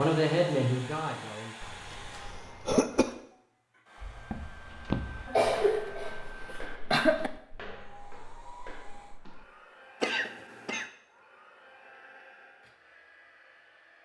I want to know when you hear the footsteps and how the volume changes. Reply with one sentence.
You can hear the footsteps from 4.0 to 9.4 s, getting quieter.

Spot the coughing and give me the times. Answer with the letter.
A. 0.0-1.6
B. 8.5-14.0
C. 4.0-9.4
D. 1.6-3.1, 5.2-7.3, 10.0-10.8
D.